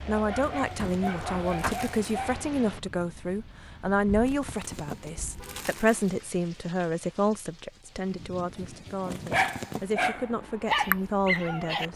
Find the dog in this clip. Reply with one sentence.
You can hear the dog from 0.0 to 3.4 s and from 8.1 to 11.9 s.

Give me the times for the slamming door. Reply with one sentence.
The slamming door can be heard from 0.8 to 1.8 s.